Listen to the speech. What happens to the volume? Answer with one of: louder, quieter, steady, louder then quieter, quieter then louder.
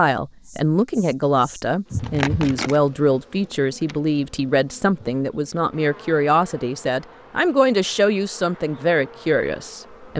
steady.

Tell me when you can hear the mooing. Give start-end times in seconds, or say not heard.
not heard.